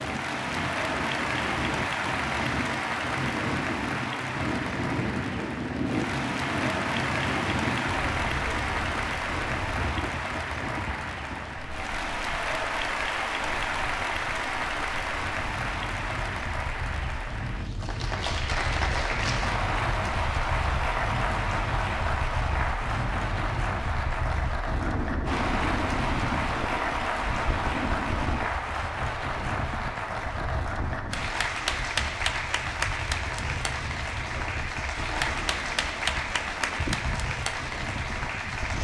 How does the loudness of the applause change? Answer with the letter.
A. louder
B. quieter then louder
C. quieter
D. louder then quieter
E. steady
E.